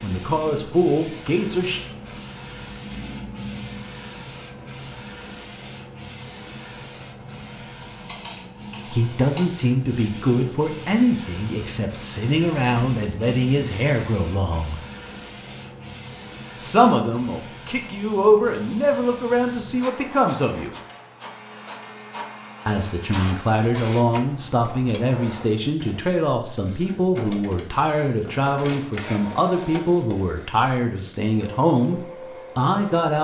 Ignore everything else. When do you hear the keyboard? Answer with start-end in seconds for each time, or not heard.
7.5-9.4.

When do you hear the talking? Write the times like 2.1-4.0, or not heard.
0.0-1.8, 8.8-14.8, 16.6-20.7, 22.6-33.1.